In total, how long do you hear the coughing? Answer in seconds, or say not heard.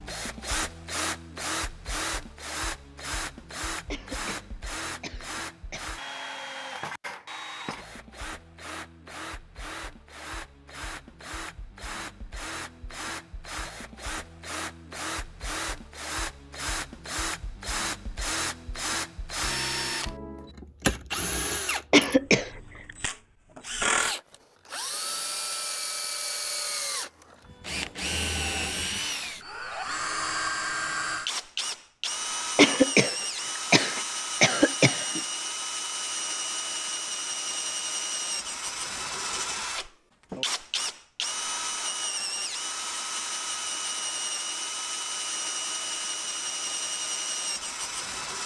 5 s.